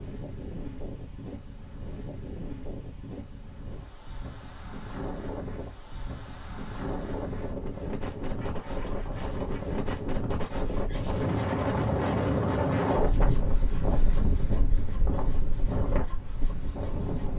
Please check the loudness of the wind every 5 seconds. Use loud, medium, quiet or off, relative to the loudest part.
quiet, medium, loud, medium.